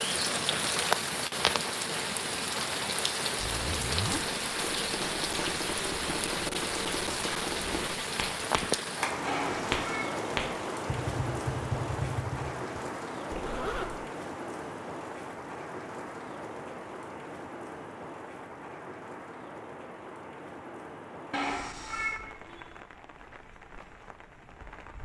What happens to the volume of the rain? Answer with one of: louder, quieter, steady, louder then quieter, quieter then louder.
quieter.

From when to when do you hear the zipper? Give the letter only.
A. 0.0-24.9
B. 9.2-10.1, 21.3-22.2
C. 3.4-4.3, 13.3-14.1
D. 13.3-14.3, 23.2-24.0
C.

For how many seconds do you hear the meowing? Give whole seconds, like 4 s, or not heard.
2 s.